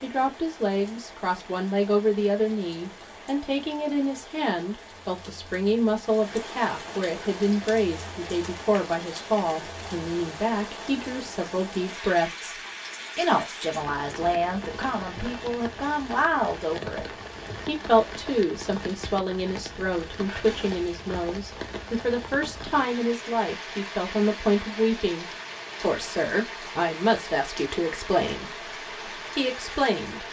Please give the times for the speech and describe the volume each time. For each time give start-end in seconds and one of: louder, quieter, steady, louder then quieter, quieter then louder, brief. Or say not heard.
0.0-12.6 steady
13.2-30.2 steady.